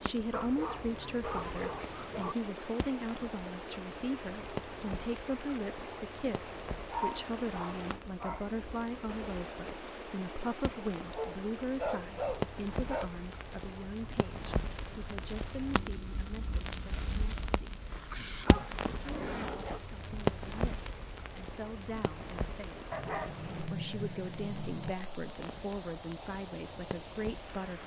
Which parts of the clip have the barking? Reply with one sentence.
The barking can be heard from 0.3 to 2.4 s, from 6.9 to 8.4 s, from 11.1 to 13.1 s, from 17.9 to 19.8 s and from 22.9 to 24.9 s.